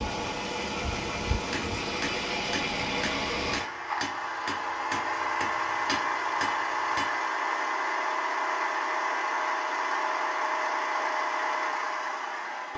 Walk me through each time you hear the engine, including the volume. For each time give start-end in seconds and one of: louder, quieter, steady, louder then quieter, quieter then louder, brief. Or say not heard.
0.0-12.7 steady.